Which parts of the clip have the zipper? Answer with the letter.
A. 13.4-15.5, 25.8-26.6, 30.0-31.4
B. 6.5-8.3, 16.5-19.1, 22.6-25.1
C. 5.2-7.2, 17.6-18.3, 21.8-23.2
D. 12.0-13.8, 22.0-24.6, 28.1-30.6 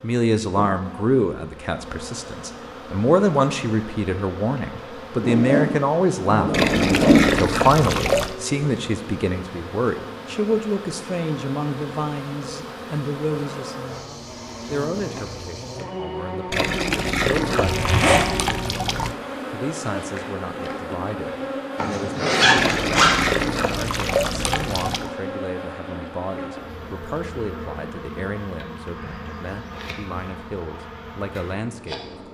C.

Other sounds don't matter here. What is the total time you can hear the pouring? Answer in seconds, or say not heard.
7 s.